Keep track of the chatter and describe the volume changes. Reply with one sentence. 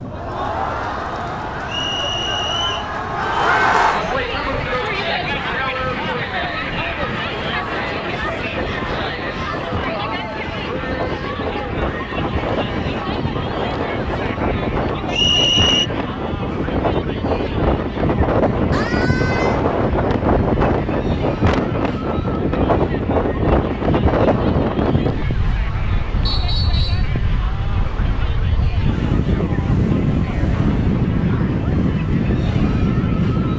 The loudness of the chatter goes down.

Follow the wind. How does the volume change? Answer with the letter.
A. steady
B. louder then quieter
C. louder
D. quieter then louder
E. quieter
C.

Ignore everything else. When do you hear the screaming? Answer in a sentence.
The screaming can be heard from 18.7 to 19.6 s.